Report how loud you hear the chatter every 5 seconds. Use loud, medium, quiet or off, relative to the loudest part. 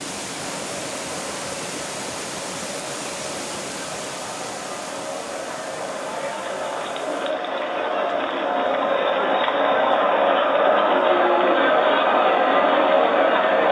quiet, medium, loud.